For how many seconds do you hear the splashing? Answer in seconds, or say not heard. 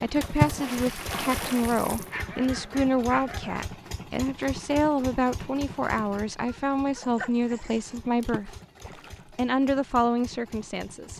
3 s.